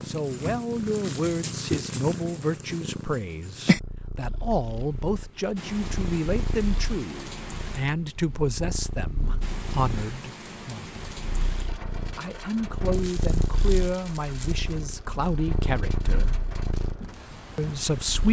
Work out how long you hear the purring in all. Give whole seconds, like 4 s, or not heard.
18 s.